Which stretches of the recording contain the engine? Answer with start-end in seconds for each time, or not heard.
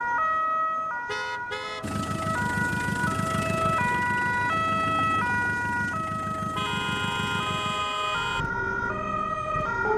1.8-9.9.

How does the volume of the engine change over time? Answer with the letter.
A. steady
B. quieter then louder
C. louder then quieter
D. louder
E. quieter
E.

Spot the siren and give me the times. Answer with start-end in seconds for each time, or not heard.
0.0-9.9.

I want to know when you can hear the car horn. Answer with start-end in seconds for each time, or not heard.
1.1-1.9, 6.5-8.4.